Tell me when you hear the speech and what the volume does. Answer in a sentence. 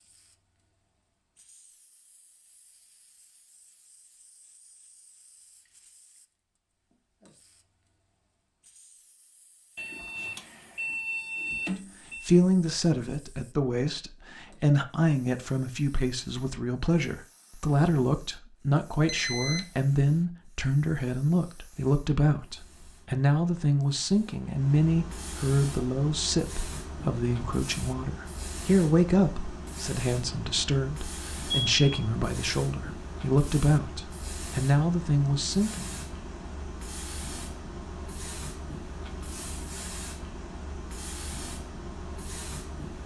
The speech can be heard from 12.2 to 36.0 s, at a steady volume.